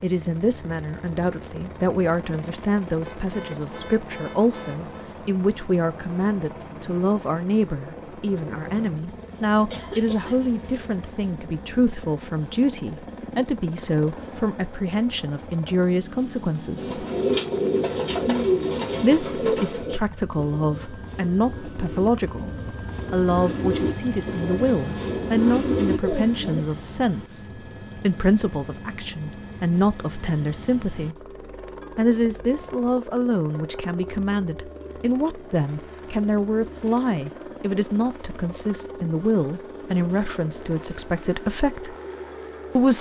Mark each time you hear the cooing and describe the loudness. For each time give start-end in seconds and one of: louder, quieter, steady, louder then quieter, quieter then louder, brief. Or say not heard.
16.8-26.6 quieter then louder.